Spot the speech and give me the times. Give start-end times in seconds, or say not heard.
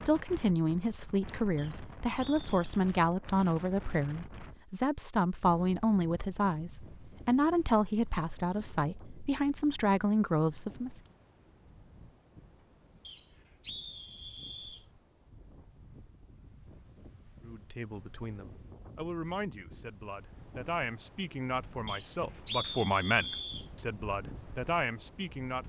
0.1-11.0, 17.4-25.6.